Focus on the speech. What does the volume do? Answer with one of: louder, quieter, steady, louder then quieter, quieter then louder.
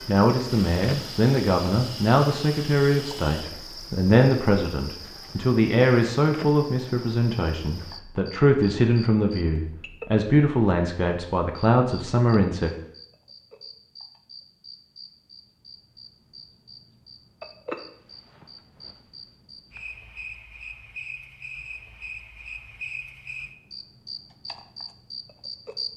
steady.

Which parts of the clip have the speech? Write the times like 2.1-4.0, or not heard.
0.1-12.7.